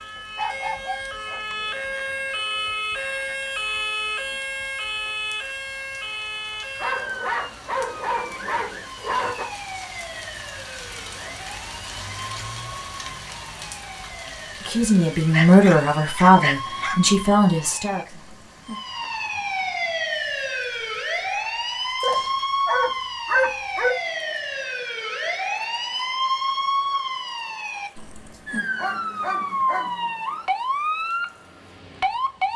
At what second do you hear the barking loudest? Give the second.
23 s.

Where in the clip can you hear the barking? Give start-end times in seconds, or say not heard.
0.1-2.1, 6.8-9.5, 15.3-16.9, 22.0-23.9, 27.9-29.9.